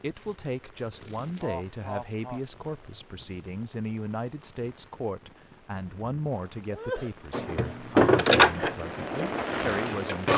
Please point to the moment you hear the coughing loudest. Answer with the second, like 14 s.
7 s.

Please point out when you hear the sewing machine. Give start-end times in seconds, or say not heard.
7.3-10.3.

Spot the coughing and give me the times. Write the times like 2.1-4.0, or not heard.
1.4-2.4, 6.7-7.2.